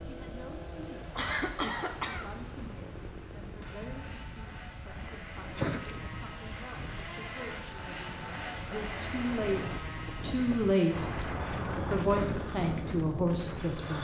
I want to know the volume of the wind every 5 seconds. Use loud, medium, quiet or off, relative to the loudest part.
medium, medium, loud.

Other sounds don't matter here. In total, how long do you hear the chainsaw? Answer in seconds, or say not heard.
14 s.